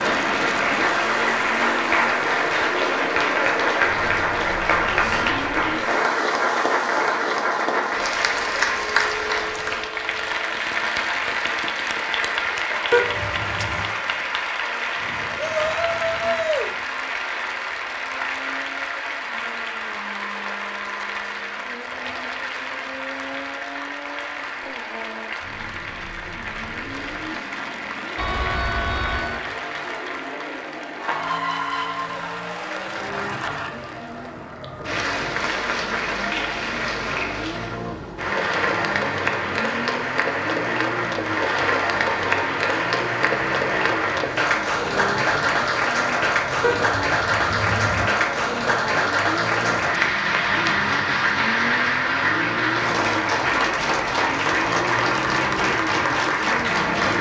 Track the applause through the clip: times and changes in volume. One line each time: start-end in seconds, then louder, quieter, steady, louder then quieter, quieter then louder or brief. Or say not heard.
0.0-57.1 quieter then louder.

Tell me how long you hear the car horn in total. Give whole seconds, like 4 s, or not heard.
4 s.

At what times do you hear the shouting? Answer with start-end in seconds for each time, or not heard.
15.3-16.8.